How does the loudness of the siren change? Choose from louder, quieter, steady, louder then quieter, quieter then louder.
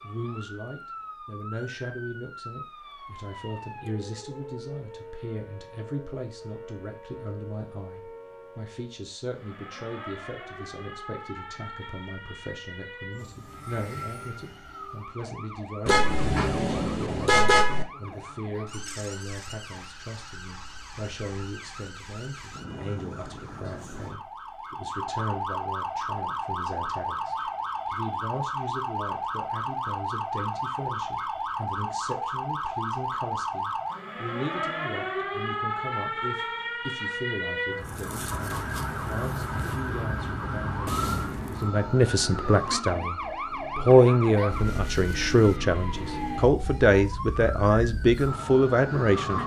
louder.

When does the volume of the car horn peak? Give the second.
17 s.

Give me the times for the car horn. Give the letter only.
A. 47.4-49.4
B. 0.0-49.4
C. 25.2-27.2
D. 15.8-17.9
D.